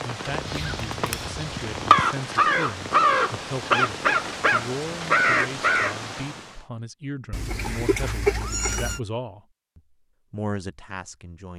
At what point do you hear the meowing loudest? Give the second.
8 s.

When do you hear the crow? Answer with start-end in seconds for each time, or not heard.
0.3-6.2.